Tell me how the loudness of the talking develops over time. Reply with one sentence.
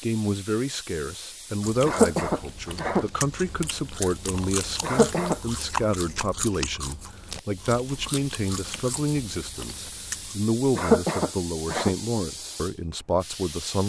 The loudness of the talking stays about the same.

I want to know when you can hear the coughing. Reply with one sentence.
The coughing can be heard from 1.9 to 3.0 s, from 4.8 to 5.4 s and from 10.8 to 11.9 s.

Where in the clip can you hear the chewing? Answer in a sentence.
You can hear the chewing from 1.6 to 10.4 s.